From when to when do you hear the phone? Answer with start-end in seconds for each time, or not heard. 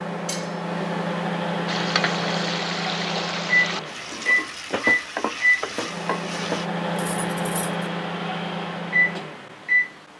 not heard.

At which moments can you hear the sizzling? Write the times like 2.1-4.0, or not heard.
1.6-6.7.